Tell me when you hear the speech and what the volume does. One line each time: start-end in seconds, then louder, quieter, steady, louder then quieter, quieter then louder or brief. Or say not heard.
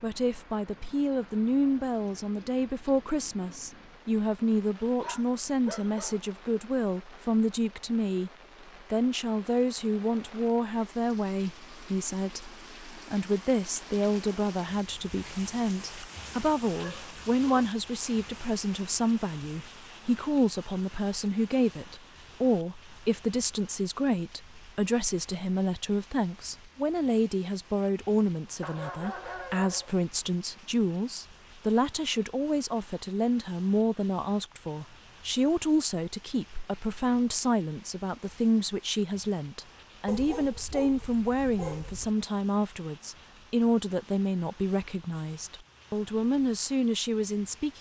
0.0-8.3 steady
8.9-47.7 steady.